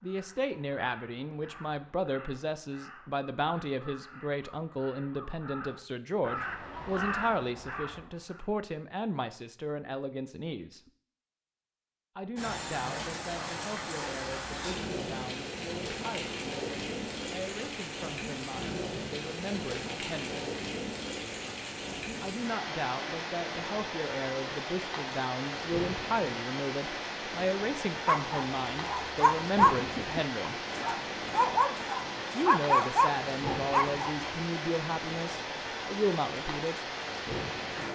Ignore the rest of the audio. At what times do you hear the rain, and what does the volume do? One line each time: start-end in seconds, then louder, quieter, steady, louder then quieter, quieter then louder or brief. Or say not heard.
12.3-37.9 steady.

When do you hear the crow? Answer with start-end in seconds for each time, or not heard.
0.0-8.4.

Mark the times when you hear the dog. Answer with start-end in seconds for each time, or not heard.
28.1-34.5.